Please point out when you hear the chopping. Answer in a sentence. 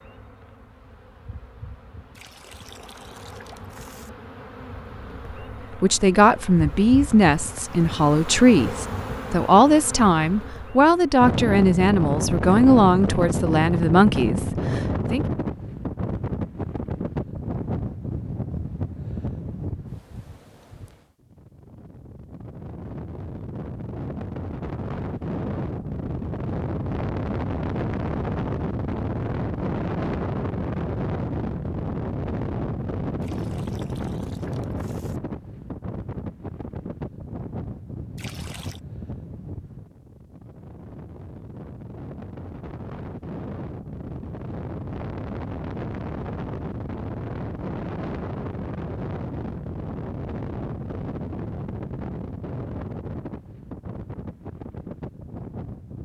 The chopping can't be heard in this clip.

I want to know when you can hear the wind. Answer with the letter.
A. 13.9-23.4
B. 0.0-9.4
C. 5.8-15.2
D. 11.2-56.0
D.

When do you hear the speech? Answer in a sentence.
The speech can be heard from 5.8 to 15.2 s.